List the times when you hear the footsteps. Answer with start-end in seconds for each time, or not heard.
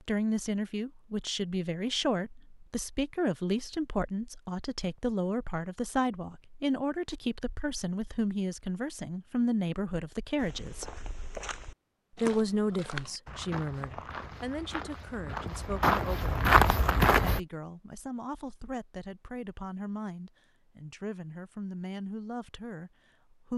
10.3-17.4.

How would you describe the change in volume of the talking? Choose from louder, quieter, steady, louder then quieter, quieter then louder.
quieter.